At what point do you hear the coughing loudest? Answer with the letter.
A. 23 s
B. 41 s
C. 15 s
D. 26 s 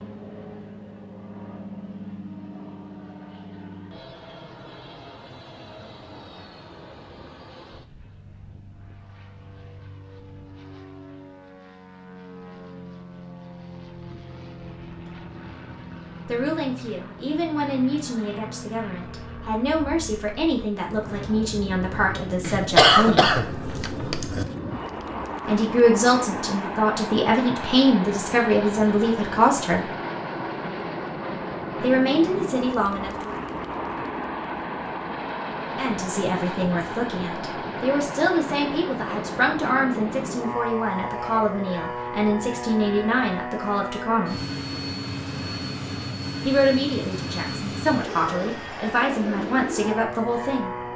A.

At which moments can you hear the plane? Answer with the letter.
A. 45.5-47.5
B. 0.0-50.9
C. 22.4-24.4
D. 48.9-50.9
B.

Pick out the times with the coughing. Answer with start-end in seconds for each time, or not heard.
22.4-24.4.